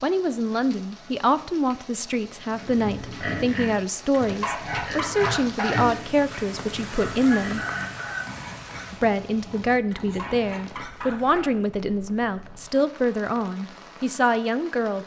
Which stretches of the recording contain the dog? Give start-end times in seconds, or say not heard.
4.1-5.8, 9.9-11.5.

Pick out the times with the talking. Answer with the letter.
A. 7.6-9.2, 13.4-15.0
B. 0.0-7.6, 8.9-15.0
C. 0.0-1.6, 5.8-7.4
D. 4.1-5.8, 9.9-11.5
B.